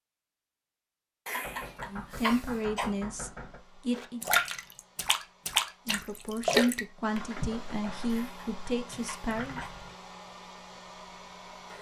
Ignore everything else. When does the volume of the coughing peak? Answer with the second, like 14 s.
2 s.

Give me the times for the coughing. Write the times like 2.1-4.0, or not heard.
1.2-3.0, 8.1-9.8.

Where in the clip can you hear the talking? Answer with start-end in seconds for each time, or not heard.
1.9-4.2, 5.8-9.6.